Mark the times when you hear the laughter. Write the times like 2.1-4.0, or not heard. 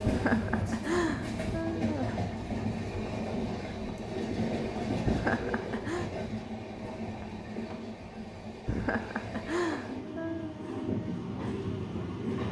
0.1-2.2, 5.0-6.1, 8.7-10.6.